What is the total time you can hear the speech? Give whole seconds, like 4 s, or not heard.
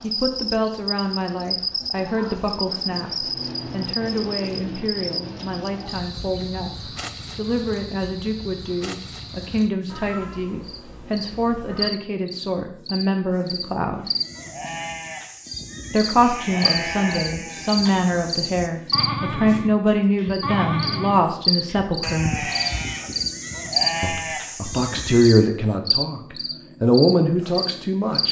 25 s.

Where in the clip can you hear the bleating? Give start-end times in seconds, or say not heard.
14.2-25.4.